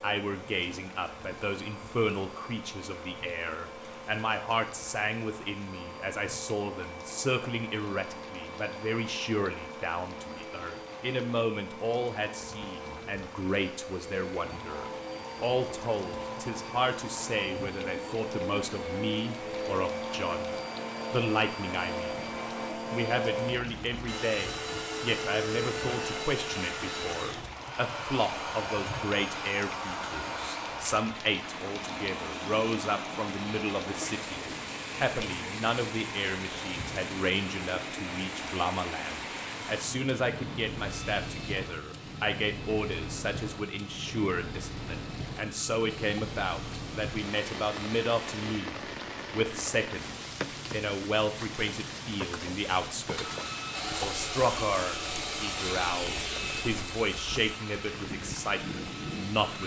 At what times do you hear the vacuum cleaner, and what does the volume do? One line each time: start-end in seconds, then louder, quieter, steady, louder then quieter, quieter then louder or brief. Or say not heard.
0.0-48.6 louder then quieter
53.0-59.6 quieter.